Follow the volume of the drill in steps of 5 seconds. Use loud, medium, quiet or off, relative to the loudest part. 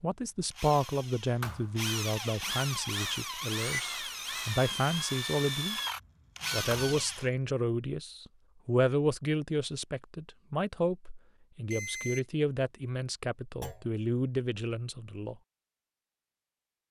loud, loud, off, off.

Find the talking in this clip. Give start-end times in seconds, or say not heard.
0.0-5.8, 6.5-15.3.